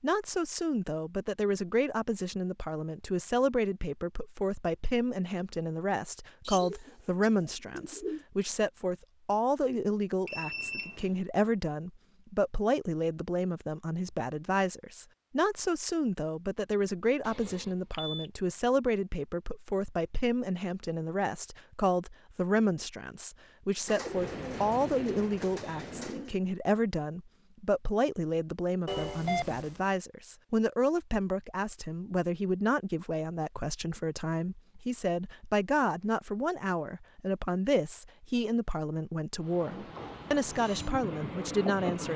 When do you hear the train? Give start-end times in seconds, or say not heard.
24.0-26.2, 39.4-42.1.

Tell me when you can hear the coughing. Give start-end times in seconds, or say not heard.
not heard.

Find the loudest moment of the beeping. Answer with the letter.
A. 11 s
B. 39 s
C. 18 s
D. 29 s
D.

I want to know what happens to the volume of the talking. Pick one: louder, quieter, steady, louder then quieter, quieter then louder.
steady.